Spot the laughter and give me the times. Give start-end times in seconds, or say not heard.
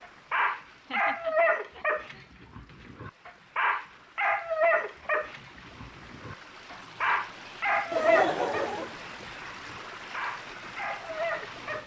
0.7-2.2, 7.9-8.9.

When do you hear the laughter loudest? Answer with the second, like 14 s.
8 s.